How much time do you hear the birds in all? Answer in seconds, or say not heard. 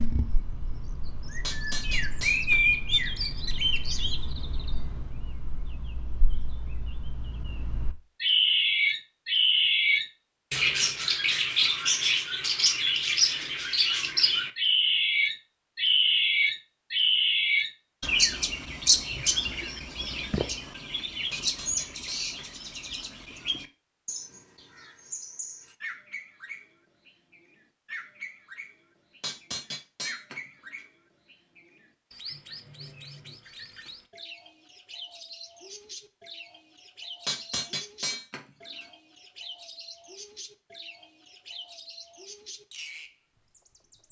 44 s.